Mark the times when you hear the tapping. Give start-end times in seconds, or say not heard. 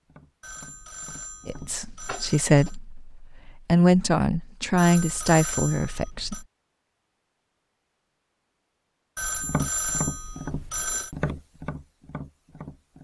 0.0-2.7, 9.2-12.9.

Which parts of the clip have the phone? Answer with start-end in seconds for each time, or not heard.
0.4-2.8, 4.8-6.5, 9.2-11.2.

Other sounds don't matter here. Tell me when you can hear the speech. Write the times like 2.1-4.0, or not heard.
1.4-6.4.